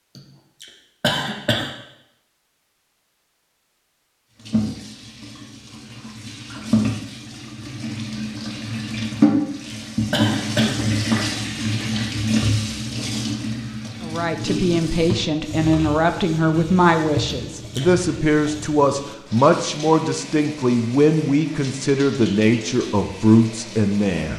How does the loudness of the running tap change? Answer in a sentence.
The loudness of the running tap goes up, then down.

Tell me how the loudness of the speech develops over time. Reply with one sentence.
The loudness of the speech stays about the same.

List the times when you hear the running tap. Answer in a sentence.
The running tap can be heard from 4.3 to 24.3 s.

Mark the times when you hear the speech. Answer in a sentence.
You can hear the speech from 14.0 to 24.3 s.